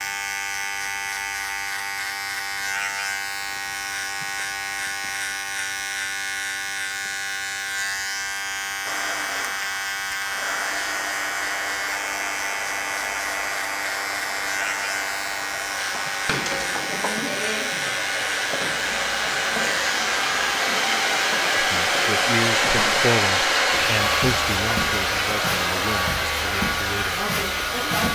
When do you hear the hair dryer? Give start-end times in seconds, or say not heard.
8.8-28.0.